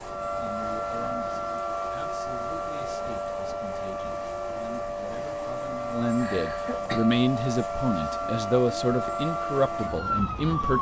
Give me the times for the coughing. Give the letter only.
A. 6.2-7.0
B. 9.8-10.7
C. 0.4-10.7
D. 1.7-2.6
A.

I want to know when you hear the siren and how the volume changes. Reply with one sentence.
You can hear the siren from 0.0 to 10.7 s, at a steady volume.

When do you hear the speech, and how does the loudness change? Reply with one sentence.
The speech can be heard from 0.4 to 10.7 s, getting louder.